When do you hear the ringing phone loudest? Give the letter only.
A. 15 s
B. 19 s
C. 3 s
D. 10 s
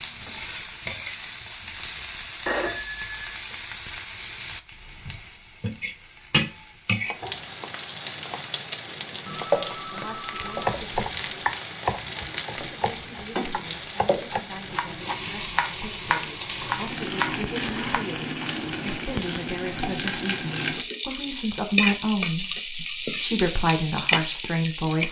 C.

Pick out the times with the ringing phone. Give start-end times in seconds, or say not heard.
2.5-3.4, 9.2-10.6, 17.5-19.2.